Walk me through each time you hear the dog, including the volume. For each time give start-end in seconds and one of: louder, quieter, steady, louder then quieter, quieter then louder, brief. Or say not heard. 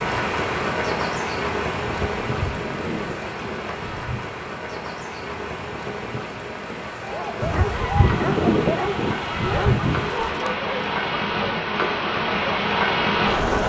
7.0-11.2 steady.